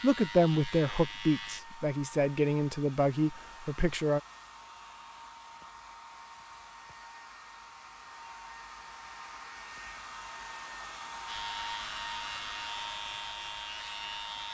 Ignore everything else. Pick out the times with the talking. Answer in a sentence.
You can hear the talking from 0.0 to 4.2 s.